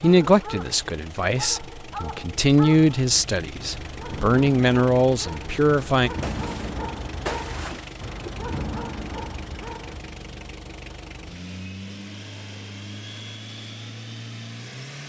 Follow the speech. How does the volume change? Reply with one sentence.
The loudness of the speech goes up.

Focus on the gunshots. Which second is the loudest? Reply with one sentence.
The loudest moment of the gunshots is at 7 seconds.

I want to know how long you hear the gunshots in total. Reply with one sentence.
You can hear the gunshots for 2 seconds altogether.